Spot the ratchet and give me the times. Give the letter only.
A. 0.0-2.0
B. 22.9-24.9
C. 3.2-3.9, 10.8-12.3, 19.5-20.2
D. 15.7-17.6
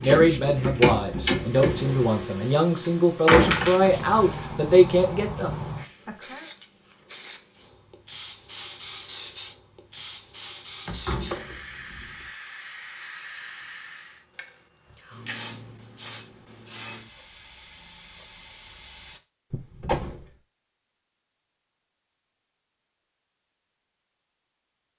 A.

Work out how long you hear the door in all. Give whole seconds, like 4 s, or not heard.
3 s.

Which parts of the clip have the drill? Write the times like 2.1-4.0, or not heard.
not heard.